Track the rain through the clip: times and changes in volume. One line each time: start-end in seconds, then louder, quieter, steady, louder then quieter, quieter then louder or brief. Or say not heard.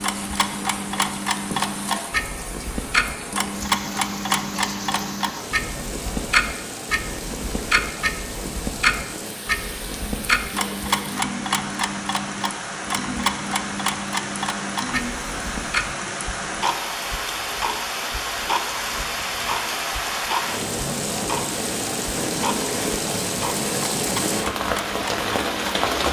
0.0-26.0 louder.